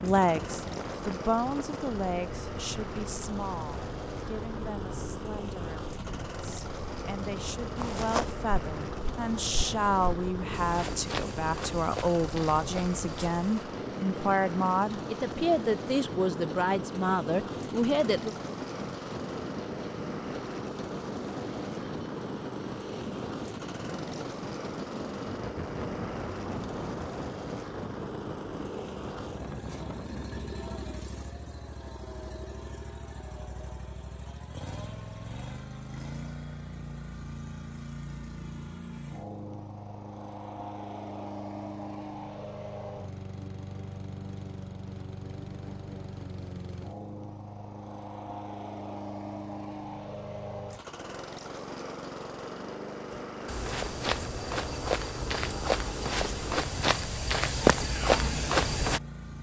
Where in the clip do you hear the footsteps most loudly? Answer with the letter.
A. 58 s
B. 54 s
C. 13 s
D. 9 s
A.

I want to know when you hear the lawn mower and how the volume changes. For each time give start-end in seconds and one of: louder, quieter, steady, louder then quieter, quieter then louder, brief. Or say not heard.
0.0-59.3 steady.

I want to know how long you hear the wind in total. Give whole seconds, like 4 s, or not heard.
31 s.